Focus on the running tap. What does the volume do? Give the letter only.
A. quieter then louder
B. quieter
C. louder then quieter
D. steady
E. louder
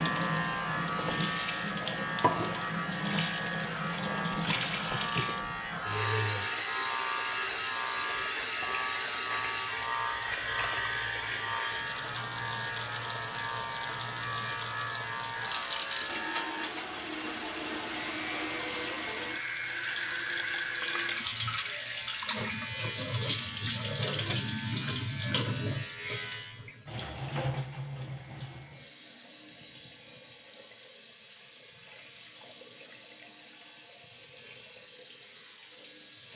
B.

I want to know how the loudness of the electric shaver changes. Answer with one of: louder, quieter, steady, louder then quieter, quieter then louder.
quieter.